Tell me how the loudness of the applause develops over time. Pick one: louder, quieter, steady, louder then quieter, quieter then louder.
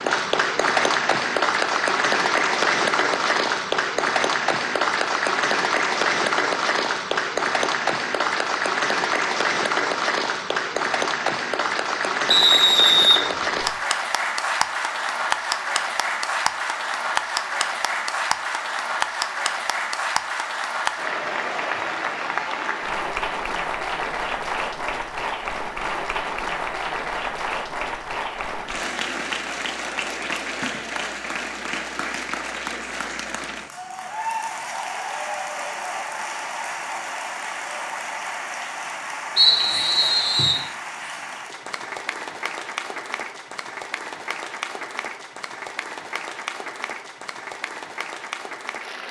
quieter.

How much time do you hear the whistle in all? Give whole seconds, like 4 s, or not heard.
3 s.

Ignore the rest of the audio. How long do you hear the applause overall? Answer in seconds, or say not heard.
49 s.